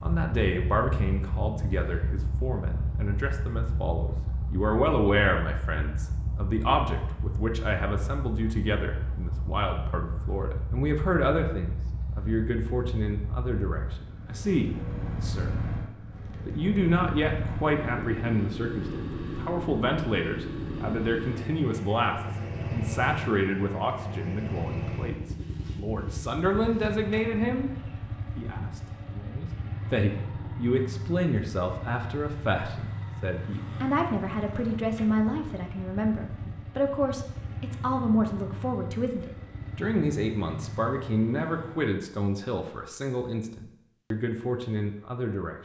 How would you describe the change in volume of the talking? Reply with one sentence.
The loudness of the talking stays about the same.